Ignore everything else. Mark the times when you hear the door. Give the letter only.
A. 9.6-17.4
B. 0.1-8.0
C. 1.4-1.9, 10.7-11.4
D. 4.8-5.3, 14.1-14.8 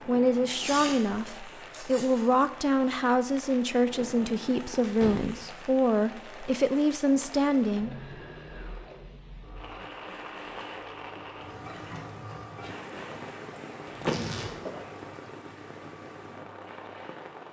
D.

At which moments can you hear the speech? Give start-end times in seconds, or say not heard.
0.1-8.0.